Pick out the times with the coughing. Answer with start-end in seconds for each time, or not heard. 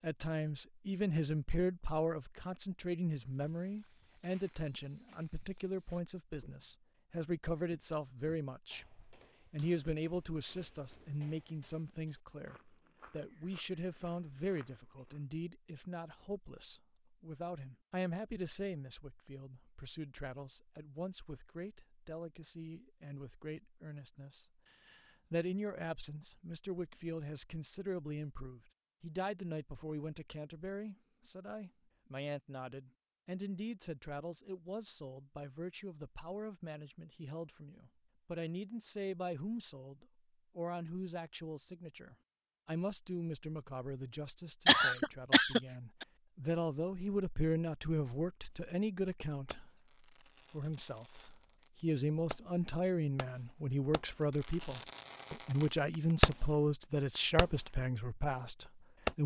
44.6-46.0.